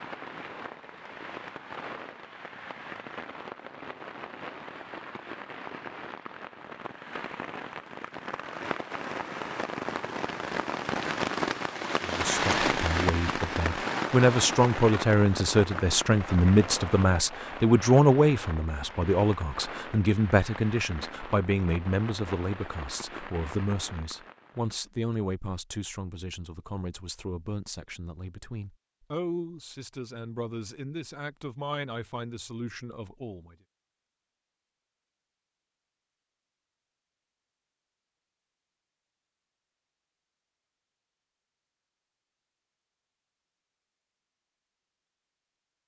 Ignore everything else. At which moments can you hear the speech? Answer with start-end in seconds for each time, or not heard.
12.0-33.5.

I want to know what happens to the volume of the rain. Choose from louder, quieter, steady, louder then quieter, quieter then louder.
louder then quieter.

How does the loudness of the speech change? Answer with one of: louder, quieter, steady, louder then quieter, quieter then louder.
quieter.